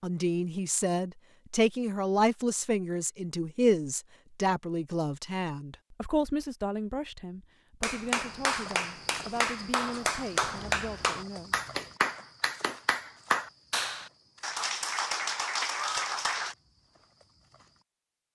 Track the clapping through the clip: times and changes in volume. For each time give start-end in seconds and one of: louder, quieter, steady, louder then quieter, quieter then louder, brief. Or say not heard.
7.8-16.6 steady.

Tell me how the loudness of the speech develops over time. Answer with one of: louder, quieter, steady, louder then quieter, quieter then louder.
quieter.